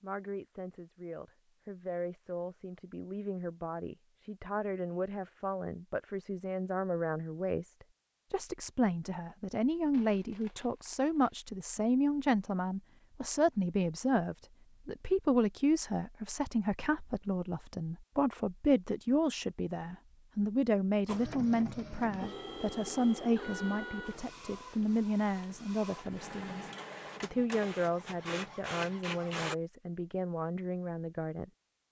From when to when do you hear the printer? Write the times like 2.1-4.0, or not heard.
21.1-29.6.